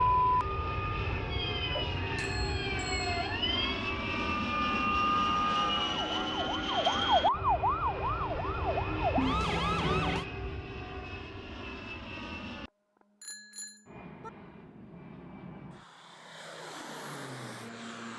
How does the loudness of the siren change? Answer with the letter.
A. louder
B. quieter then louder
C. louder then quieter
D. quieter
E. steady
A.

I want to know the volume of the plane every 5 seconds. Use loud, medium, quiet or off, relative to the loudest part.
loud, loud, medium, medium.